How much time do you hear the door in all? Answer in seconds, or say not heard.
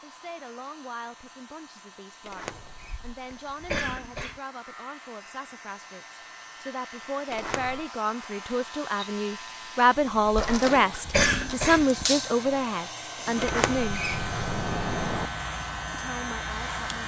3 s.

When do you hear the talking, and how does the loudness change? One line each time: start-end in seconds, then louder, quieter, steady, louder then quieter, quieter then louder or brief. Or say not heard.
0.0-14.1 louder
15.9-17.0 brief.